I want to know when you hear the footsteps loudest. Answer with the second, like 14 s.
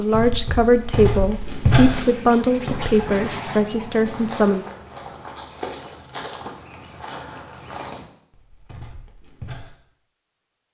2 s.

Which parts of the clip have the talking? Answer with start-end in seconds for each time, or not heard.
0.0-4.7.